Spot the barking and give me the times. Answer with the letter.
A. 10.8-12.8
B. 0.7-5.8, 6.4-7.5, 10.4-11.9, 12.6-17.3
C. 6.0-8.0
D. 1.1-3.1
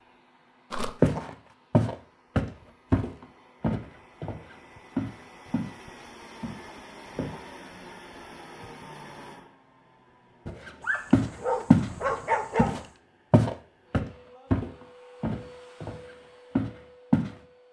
A.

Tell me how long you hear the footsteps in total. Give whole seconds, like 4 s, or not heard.
12 s.